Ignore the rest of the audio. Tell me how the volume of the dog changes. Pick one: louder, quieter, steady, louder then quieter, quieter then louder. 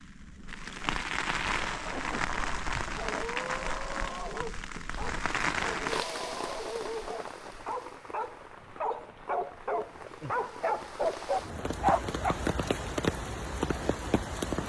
louder.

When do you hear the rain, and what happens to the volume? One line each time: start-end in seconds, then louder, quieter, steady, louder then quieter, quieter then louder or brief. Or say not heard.
0.0-14.6 quieter then louder.